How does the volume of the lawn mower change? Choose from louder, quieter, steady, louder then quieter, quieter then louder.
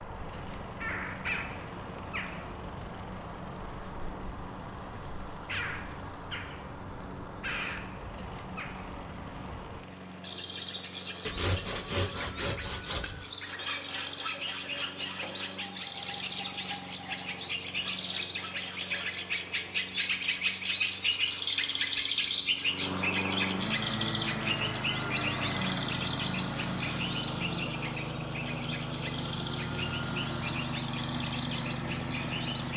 louder.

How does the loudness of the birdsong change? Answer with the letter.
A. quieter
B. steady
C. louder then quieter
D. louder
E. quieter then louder
C.